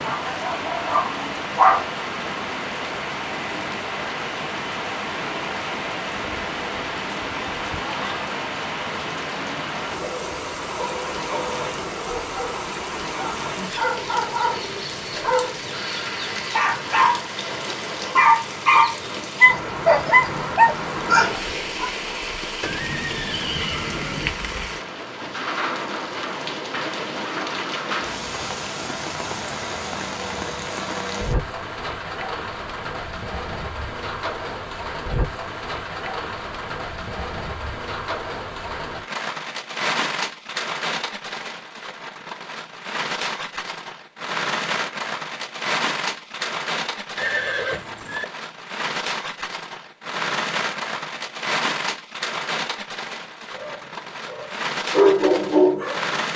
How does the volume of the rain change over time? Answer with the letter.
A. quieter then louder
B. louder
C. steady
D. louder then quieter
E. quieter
C.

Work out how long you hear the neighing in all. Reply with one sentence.
You can hear the neighing for 3 seconds altogether.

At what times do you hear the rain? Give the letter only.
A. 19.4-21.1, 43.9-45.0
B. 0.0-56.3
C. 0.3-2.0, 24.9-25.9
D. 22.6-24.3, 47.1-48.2
B.